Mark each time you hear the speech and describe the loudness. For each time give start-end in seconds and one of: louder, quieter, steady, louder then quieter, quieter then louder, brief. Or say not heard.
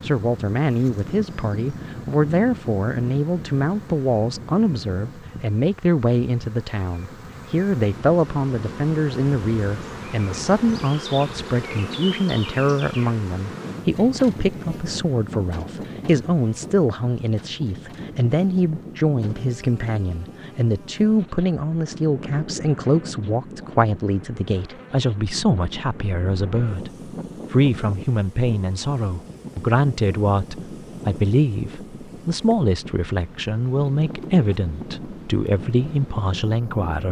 0.0-37.0 steady.